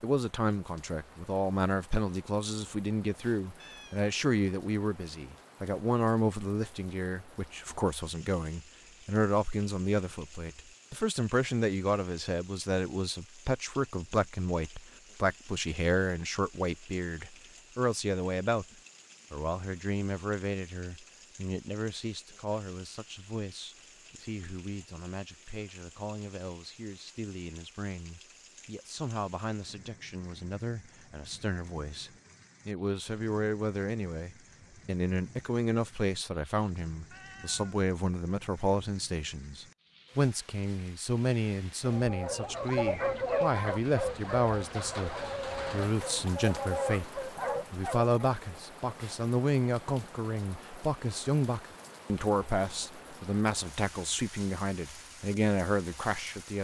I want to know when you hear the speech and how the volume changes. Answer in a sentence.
The speech can be heard from 0.0 to 18.6 s, at a steady volume; and from 19.3 to 56.5 s, getting louder.